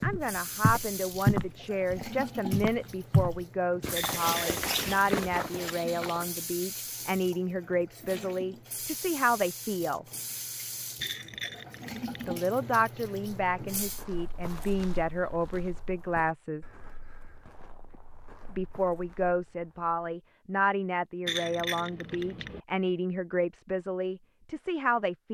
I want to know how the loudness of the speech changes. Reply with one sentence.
The loudness of the speech stays about the same.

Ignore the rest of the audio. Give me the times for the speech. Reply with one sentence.
You can hear the speech from 0.0 to 10.1 s, from 12.2 to 16.6 s and from 18.5 to 25.3 s.